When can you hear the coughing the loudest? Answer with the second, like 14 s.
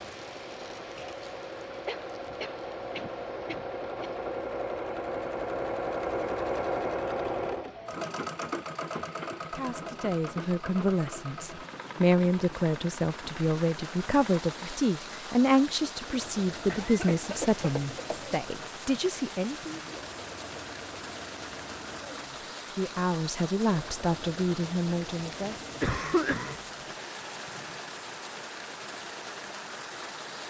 26 s.